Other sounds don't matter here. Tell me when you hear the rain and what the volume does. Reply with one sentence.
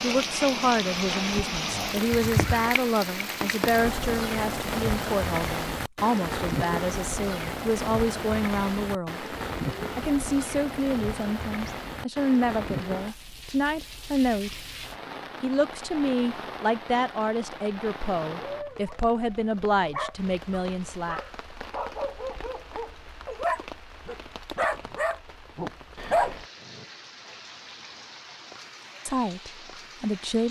The rain can be heard from 0.0 to 30.4 s, getting quieter.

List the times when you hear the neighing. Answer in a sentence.
The neighing can be heard from 2.1 to 2.7 s.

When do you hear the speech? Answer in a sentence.
You can hear the speech from 0.0 to 9.2 s, from 9.9 to 14.6 s, from 15.4 to 21.2 s and from 29.1 to 30.4 s.